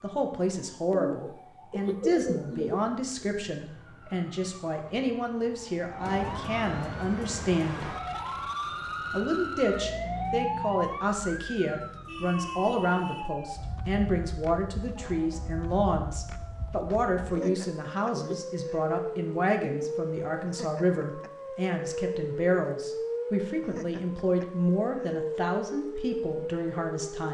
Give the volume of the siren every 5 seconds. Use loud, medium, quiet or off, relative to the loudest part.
quiet, loud, loud, loud, loud, loud.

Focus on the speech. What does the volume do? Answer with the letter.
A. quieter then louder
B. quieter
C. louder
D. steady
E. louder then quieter
D.